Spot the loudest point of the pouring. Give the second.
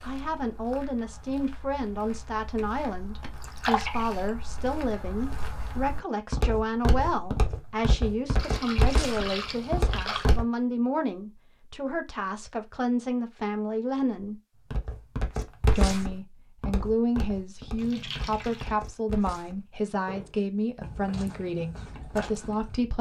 4 s.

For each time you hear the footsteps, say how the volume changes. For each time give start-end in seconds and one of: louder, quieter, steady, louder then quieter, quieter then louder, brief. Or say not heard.
0.0-10.4 louder
14.7-22.8 quieter.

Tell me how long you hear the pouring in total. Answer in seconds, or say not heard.
4 s.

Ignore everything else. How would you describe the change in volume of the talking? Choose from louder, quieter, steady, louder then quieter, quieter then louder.
steady.